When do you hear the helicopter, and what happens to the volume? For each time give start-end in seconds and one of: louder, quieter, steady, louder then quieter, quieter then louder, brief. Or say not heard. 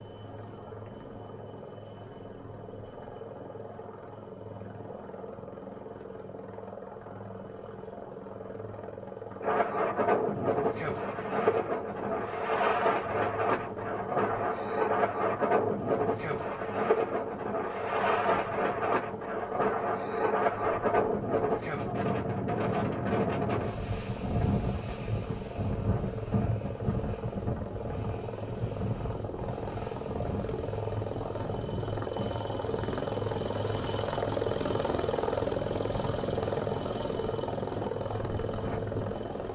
0.0-39.5 louder.